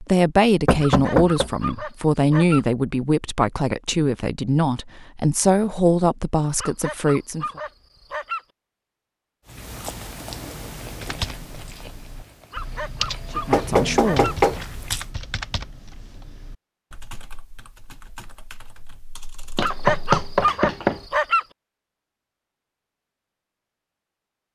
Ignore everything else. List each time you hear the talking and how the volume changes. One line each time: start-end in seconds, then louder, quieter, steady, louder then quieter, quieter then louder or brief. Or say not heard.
0.0-7.5 steady
13.3-14.4 brief.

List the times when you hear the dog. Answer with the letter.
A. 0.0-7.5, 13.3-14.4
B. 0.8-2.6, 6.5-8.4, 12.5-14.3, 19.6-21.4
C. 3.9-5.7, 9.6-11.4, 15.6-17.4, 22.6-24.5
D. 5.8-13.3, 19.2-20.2
B.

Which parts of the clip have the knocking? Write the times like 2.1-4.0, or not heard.
0.7-1.5, 13.5-14.7, 19.6-21.0.